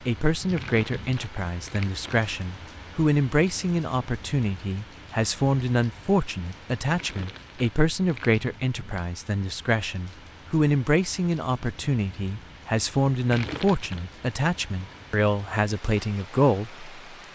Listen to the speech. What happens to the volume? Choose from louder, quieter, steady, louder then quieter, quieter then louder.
steady.